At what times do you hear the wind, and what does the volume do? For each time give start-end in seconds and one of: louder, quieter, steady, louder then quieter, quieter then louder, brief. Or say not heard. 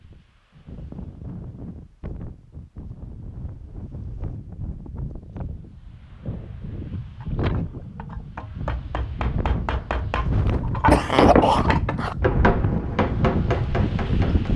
0.0-14.5 louder.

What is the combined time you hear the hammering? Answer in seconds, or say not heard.
7 s.